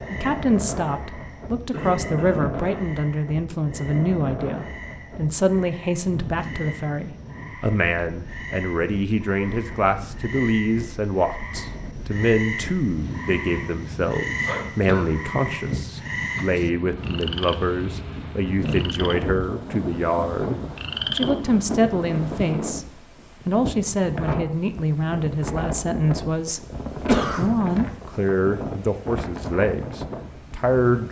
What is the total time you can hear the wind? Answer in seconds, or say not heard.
31 s.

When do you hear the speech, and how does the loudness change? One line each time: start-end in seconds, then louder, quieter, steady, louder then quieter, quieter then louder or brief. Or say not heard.
0.0-31.0 steady.